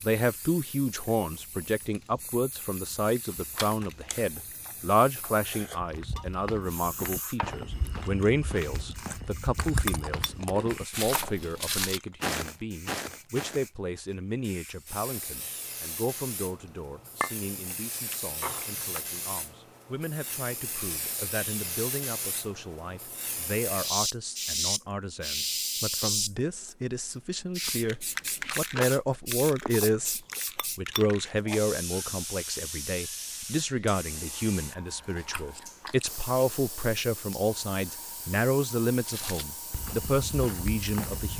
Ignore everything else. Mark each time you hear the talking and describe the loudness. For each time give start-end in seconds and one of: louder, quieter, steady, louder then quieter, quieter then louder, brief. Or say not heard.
0.0-41.3 quieter then louder.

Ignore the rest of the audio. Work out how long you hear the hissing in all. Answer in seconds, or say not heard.
41 s.